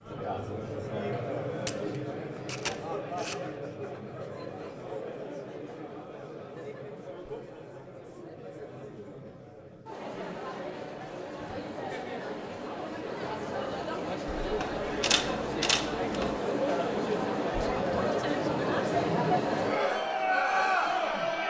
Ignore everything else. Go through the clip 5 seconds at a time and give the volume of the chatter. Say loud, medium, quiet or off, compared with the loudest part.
medium, quiet, medium, loud, loud.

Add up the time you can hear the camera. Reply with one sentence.
The camera can be heard for 4 seconds in total.